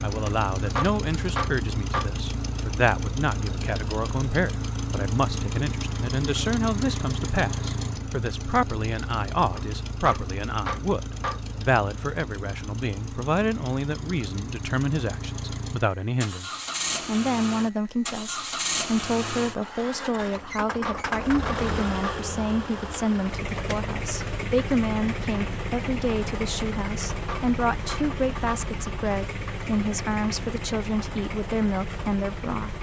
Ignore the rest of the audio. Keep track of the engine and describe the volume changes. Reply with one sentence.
The volume of the engine stays about the same.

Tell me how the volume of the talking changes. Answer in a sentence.
The loudness of the talking stays about the same.